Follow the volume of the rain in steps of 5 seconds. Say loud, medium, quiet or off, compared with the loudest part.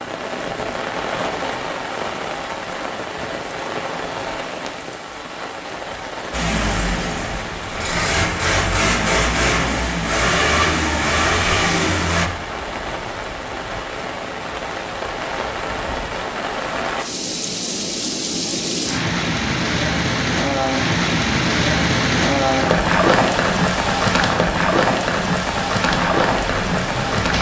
medium, quiet, medium, medium, loud, loud.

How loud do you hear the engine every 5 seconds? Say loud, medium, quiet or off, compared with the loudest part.
off, loud, loud, off, off, medium.